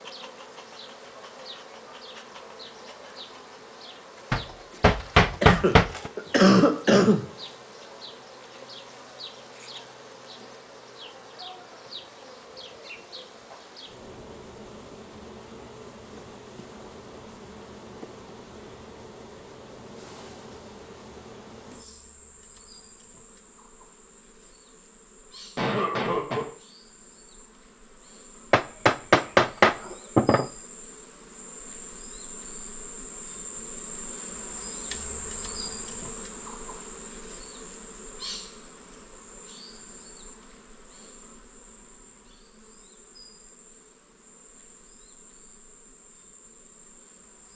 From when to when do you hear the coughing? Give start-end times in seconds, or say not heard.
5.4-7.2, 25.6-26.4.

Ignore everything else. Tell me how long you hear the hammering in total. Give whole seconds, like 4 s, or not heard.
4 s.